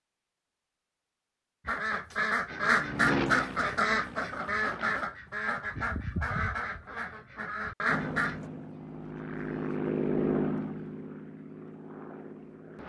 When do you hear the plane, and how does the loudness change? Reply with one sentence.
You can hear the plane briefly from 2.5 to 5.0 s; and from 7.8 to 12.8 s, getting louder then quieter.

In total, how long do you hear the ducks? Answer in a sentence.
The ducks can be heard for 7 seconds in total.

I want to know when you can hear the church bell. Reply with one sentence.
The church bell can't be heard in this clip.